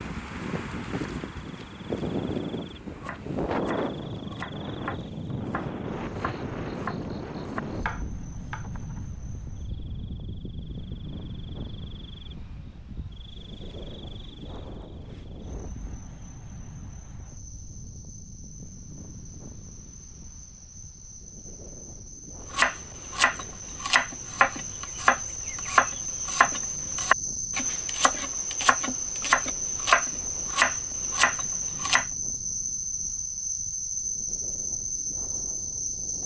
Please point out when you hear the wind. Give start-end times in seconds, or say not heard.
0.0-36.2.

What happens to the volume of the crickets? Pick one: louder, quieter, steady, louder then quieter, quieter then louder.
louder.